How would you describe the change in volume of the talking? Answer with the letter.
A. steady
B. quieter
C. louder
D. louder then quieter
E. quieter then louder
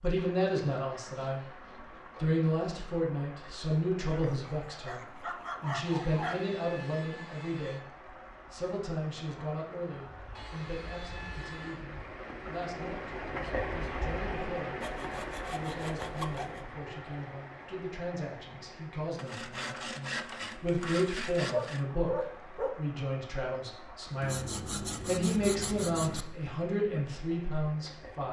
E.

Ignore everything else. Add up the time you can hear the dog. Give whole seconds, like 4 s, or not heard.
4 s.